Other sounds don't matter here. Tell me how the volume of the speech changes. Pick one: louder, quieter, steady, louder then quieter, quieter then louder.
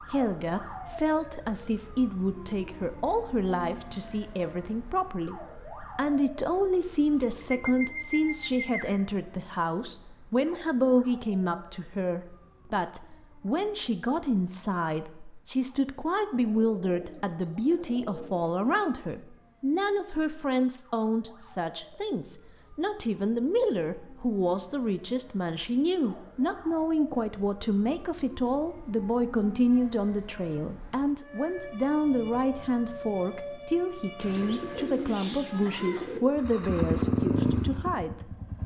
steady.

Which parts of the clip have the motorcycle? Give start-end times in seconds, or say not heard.
36.3-38.6.